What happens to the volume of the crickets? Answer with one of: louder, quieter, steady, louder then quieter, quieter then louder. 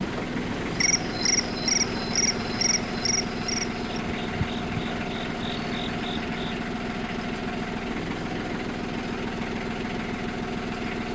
quieter.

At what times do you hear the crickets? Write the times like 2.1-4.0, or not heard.
0.0-6.5.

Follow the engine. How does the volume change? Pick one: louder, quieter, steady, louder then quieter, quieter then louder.
steady.